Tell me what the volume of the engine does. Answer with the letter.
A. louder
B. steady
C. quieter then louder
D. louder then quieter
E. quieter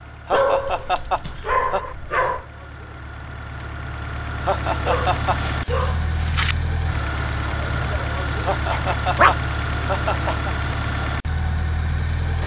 A.